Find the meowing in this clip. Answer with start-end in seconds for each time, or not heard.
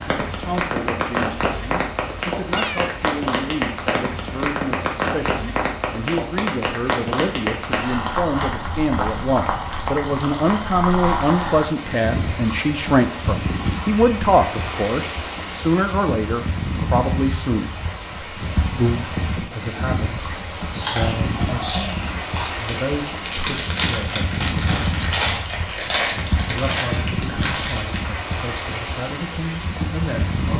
2.5-3.0.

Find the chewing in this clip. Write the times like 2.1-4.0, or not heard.
20.7-28.1.